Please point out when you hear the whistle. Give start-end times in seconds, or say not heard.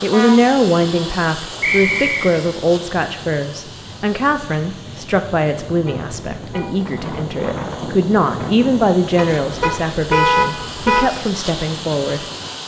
1.6-2.4.